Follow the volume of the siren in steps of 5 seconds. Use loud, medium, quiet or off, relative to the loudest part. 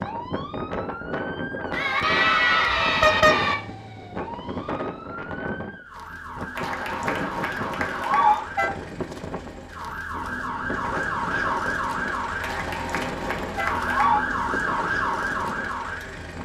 medium, medium, loud, loud.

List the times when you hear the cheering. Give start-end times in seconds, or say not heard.
1.7-3.5, 6.5-8.4, 12.4-14.2.